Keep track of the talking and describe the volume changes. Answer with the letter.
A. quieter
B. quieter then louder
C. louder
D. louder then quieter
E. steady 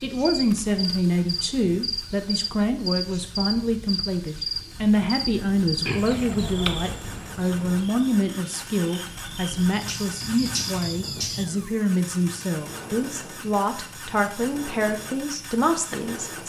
E.